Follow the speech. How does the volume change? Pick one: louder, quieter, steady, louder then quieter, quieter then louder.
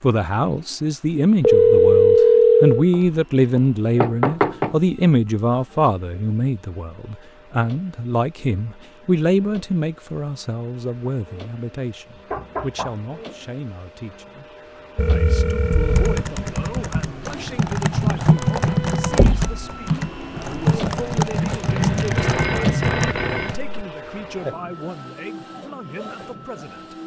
quieter.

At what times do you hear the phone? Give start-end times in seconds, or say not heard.
1.4-2.9, 14.9-16.2, 21.6-23.6.